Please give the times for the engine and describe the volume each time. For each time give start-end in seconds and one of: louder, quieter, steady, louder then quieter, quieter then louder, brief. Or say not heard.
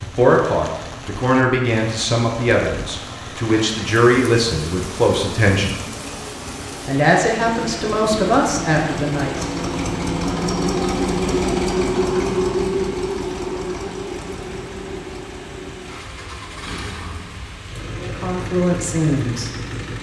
0.0-19.9 louder then quieter.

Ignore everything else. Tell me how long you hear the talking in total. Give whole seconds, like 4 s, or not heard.
10 s.